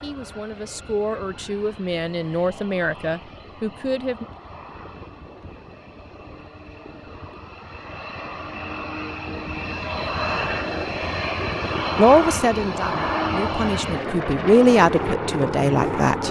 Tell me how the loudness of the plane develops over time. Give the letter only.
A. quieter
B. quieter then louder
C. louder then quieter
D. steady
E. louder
E.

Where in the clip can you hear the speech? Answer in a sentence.
You can hear the speech from 0.0 to 4.2 s and from 11.9 to 16.2 s.